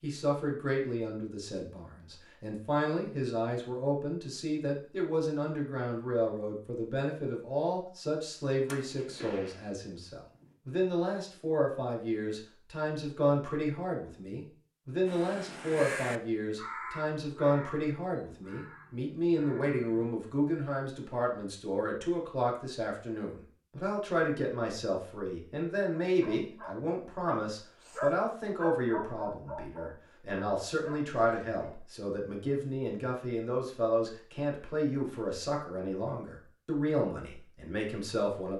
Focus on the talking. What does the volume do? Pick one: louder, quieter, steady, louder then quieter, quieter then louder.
steady.